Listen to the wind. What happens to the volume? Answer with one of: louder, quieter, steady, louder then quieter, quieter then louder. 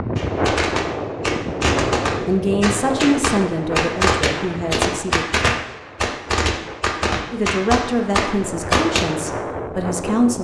quieter then louder.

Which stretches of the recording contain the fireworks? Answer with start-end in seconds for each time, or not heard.
0.1-9.2.